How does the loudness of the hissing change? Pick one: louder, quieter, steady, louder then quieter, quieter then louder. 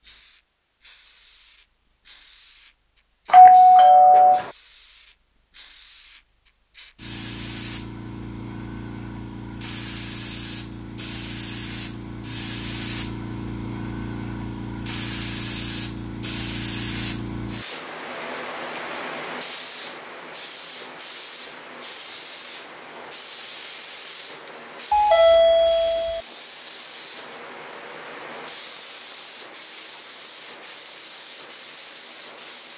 louder.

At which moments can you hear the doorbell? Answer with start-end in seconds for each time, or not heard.
3.3-4.5, 24.9-26.2.